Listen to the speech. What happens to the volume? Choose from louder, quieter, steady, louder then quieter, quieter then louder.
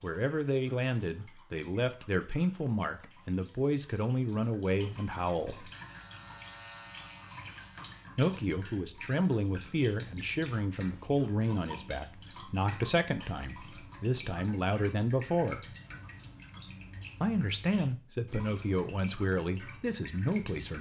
steady.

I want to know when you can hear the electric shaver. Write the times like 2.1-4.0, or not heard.
5.7-8.1.